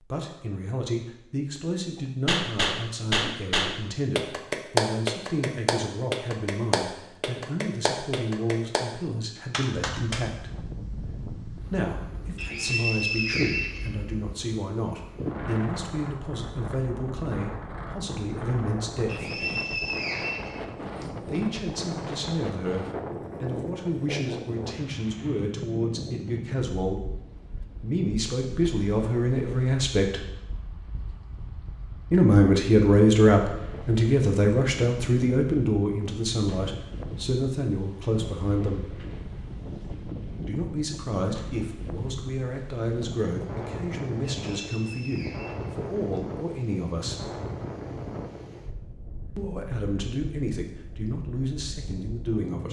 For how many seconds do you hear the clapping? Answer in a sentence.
The clapping can be heard for 7 seconds in total.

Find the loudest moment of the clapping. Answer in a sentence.
The loudest moment of the clapping is at 5 seconds.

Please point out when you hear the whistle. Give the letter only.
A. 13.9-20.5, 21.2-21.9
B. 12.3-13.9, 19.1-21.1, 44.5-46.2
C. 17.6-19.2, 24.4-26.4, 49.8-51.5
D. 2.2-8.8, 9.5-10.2
B.